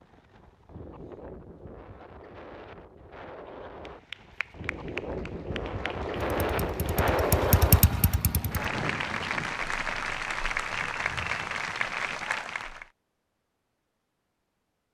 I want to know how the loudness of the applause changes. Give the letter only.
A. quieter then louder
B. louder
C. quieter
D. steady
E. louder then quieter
B.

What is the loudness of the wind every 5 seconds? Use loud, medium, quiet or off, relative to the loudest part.
quiet, loud, off.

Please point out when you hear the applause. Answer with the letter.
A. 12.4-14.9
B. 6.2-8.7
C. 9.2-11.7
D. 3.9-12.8
D.